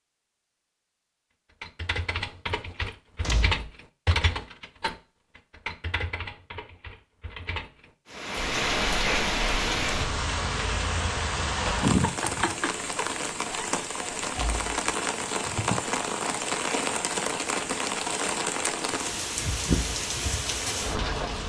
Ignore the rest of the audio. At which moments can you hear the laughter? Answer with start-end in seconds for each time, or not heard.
not heard.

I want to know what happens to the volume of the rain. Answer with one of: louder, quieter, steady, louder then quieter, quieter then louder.
steady.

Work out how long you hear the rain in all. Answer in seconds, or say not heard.
13 s.